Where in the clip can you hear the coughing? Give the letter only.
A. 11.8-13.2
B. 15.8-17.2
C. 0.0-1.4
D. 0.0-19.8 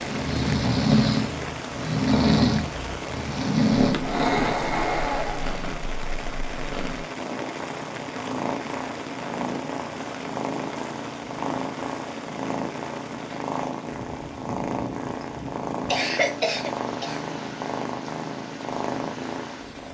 B.